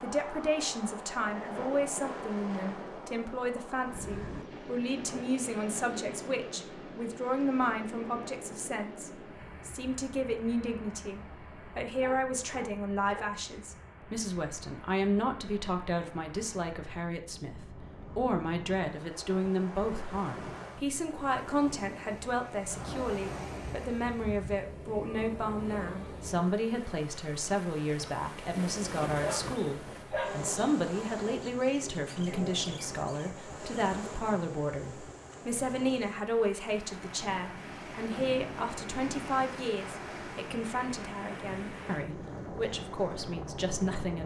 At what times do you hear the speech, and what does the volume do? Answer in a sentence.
You can hear the speech from 0.0 to 44.2 s, at a steady volume.